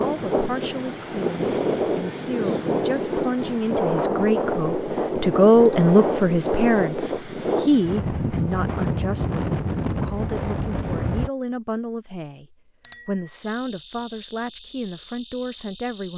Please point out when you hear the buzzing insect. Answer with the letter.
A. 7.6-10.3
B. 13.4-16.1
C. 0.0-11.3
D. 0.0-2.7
B.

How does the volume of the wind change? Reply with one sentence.
The volume of the wind stays about the same.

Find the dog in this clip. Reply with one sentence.
The dog can't be heard in this clip.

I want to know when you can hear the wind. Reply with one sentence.
You can hear the wind from 0.0 to 11.3 s.